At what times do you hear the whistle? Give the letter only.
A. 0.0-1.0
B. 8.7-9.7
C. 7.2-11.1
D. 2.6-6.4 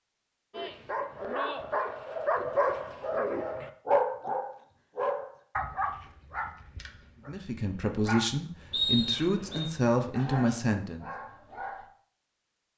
B.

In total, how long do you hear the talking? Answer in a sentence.
The talking can be heard for 4 seconds in total.